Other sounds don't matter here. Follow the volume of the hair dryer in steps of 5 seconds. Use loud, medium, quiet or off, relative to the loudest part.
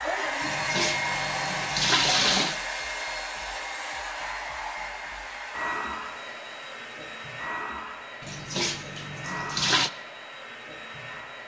loud, medium, medium.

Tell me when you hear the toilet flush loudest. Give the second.
2 s.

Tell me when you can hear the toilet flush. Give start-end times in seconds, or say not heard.
0.4-2.6, 8.2-9.9.